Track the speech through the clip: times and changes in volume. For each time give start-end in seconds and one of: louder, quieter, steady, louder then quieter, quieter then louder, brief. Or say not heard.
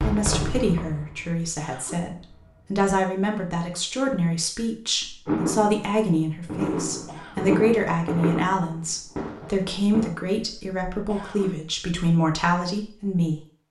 0.0-13.4 steady.